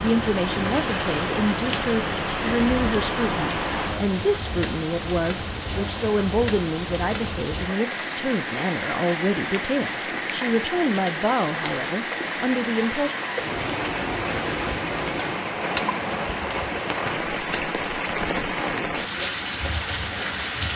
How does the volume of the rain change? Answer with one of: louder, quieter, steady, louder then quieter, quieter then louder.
steady.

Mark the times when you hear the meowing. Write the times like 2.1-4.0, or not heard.
not heard.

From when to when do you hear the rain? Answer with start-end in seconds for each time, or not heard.
0.0-20.7.